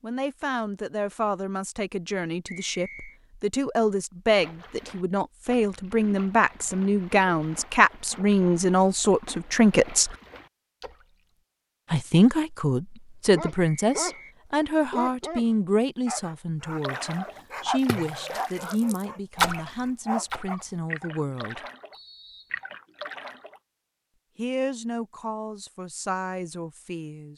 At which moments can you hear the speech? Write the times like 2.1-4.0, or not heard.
0.0-10.2, 11.9-21.6, 24.4-27.3.